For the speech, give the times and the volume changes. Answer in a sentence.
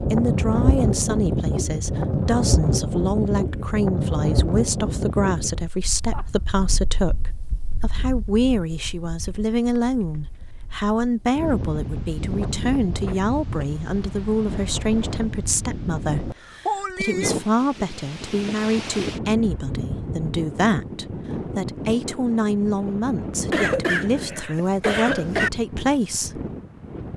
You can hear the speech from 0.1 to 26.4 s, at a steady volume.